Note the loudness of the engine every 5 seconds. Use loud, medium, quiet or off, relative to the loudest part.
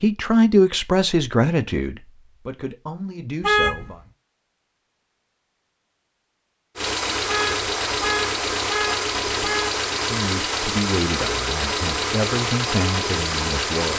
off, loud, loud.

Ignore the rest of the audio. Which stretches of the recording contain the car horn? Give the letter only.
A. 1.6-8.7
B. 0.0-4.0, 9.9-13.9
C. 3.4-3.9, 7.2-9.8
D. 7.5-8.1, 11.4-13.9
C.